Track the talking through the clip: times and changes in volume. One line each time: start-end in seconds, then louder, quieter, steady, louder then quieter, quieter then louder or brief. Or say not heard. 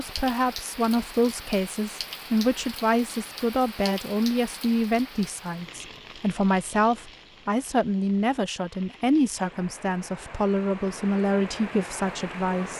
0.0-12.7 steady.